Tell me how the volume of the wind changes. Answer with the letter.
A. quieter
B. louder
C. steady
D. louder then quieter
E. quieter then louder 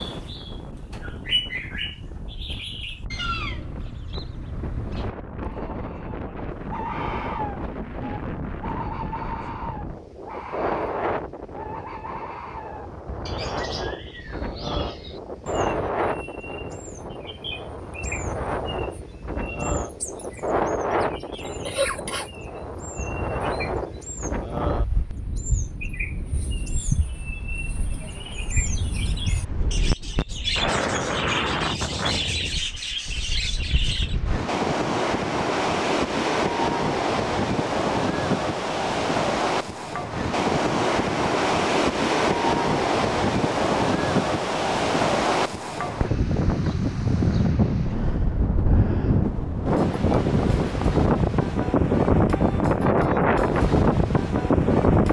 B.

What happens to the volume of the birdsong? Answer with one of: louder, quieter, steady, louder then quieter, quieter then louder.
quieter then louder.